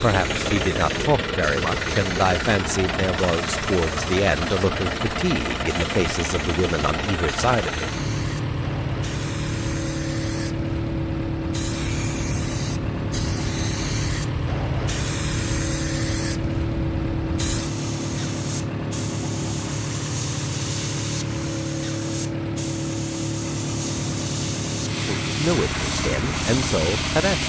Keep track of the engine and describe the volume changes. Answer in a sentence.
The loudness of the engine stays about the same.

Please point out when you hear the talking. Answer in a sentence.
The talking can be heard from 0.0 to 7.9 s and from 24.9 to 27.4 s.